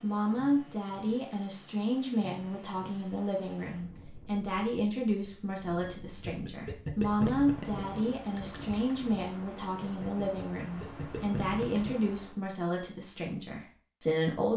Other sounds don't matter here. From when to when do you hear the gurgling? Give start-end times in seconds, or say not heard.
6.2-11.9.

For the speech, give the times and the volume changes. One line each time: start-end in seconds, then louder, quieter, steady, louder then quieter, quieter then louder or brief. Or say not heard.
0.0-14.5 steady.